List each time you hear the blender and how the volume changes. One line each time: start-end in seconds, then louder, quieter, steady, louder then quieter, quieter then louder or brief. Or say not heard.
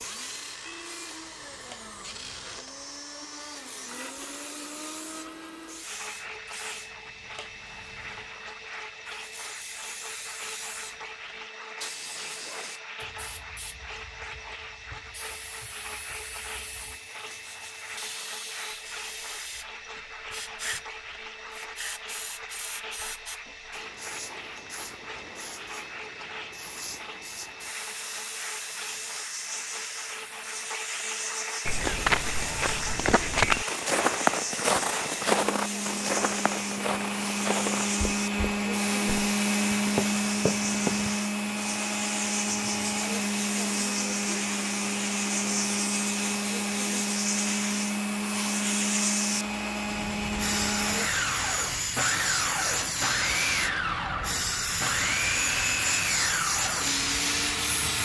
0.0-58.0 louder.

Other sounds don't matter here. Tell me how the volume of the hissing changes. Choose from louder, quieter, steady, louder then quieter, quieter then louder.
louder.